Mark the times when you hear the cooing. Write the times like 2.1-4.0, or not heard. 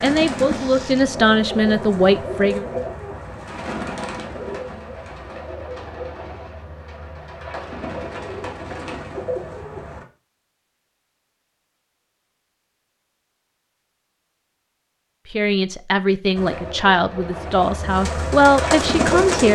0.0-10.1, 16.4-19.5.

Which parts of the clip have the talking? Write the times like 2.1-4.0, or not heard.
0.0-2.6, 15.3-19.5.